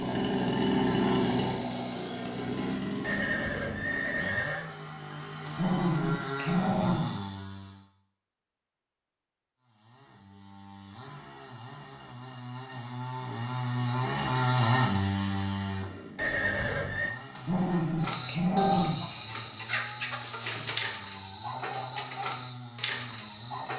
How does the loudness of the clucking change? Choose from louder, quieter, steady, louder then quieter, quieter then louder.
quieter.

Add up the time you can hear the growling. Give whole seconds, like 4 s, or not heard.
3 s.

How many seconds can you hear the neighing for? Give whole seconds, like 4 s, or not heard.
3 s.